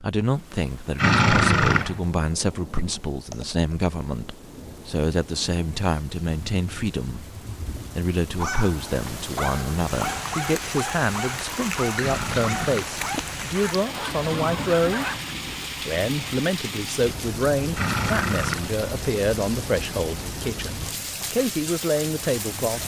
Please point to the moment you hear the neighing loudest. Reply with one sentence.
The volume of the neighing peaks at 1 second.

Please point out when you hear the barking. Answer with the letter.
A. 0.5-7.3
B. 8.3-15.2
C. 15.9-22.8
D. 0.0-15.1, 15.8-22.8
B.